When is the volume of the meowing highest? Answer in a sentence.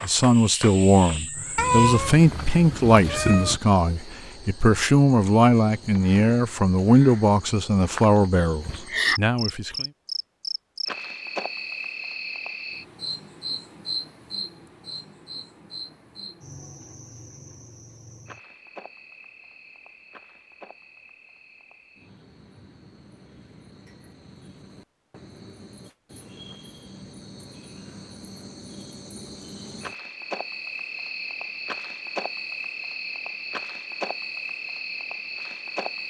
The volume of the meowing peaks at 2 seconds.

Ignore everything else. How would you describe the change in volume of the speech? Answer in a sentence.
The volume of the speech stays about the same.